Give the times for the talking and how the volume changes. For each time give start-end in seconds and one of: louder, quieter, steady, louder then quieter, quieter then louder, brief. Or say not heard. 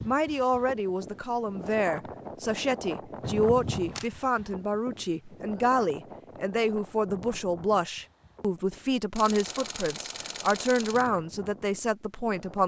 0.1-12.6 steady.